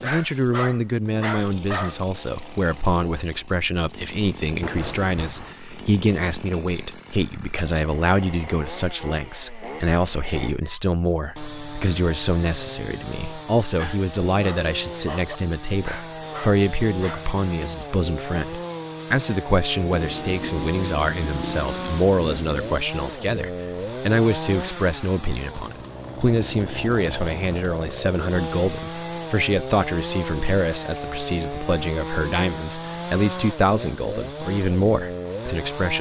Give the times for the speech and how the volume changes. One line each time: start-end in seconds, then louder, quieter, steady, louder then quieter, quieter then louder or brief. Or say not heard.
0.0-35.9 steady.